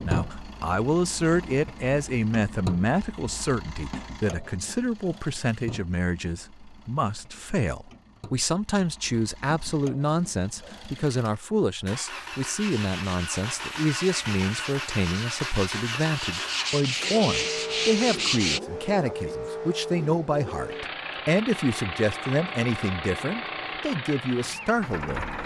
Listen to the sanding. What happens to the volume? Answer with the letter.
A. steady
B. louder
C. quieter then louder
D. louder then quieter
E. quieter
B.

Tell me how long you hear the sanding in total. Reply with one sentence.
You can hear the sanding for 6 seconds altogether.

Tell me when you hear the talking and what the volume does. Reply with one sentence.
You can hear the talking from 0.1 to 25.2 s, at a steady volume.